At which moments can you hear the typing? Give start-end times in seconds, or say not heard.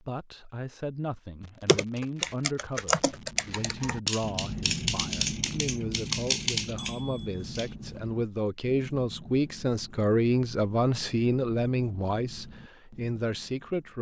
1.6-7.7.